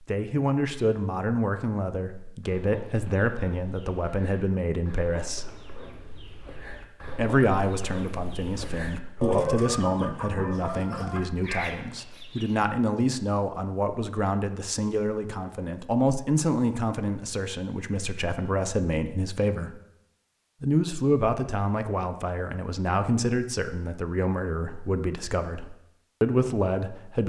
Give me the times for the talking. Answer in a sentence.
The talking can be heard from 0.0 to 5.5 s, from 7.1 to 19.8 s and from 20.6 to 27.2 s.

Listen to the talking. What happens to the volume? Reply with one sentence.
The loudness of the talking stays about the same.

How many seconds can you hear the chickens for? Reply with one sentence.
The chickens can be heard for 10 seconds in total.